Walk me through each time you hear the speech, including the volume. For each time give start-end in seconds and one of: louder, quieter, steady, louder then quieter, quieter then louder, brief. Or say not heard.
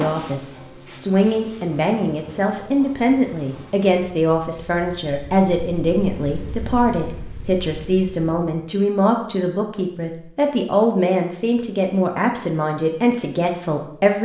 0.0-14.2 steady.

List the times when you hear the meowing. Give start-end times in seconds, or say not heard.
not heard.